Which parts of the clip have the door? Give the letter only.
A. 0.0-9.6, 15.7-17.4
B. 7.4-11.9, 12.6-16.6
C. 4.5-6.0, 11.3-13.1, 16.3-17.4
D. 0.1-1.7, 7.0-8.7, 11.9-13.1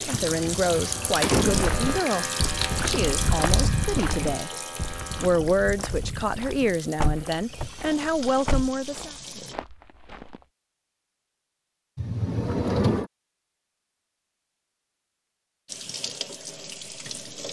D.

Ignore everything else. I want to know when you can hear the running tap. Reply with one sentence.
The running tap can be heard from 0.0 to 9.6 s and from 15.7 to 17.4 s.